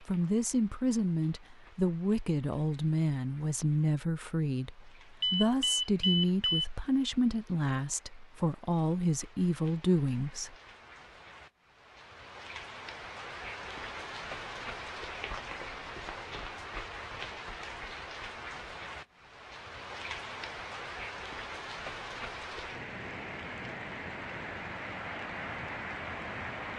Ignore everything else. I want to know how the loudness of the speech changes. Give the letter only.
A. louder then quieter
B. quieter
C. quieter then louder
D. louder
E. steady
E.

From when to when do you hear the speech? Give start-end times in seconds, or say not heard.
0.0-10.6.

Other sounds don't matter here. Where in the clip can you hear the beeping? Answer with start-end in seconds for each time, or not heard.
5.2-6.7.